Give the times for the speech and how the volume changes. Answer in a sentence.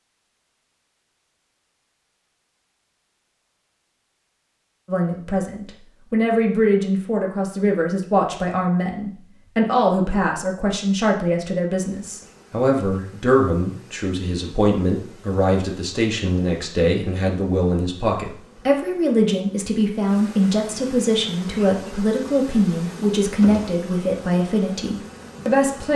You can hear the speech from 4.8 to 25.9 s, at a steady volume.